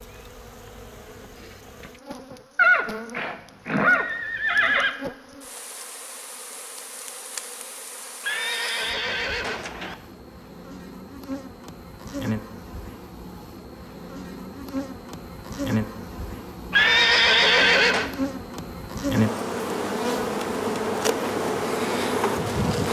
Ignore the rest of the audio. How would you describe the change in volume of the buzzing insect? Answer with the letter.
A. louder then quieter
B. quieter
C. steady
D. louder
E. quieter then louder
D.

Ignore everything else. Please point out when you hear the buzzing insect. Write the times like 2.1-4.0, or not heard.
0.0-22.8.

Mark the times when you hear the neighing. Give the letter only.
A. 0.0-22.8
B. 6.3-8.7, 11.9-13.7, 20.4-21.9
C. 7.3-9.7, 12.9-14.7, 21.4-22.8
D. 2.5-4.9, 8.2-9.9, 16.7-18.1
D.